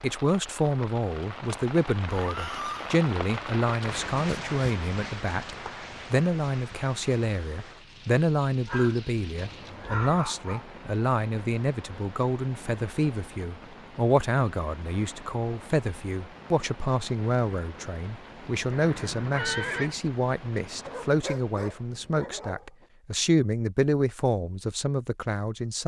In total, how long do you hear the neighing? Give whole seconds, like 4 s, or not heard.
3 s.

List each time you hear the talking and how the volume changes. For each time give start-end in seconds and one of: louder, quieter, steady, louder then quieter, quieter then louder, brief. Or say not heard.
0.0-25.8 steady.